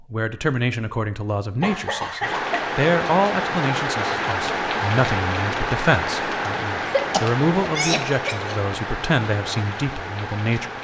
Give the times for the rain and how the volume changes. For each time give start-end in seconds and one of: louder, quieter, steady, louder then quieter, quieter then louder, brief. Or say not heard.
2.2-10.7 quieter.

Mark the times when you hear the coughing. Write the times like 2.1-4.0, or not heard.
1.6-2.7, 6.8-8.6.